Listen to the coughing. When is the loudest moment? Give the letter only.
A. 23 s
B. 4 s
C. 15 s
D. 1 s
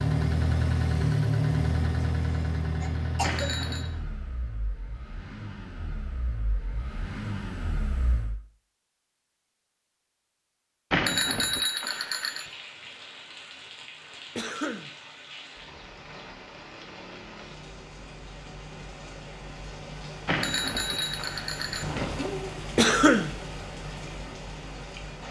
A.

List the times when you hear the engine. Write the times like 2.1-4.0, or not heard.
0.0-8.4.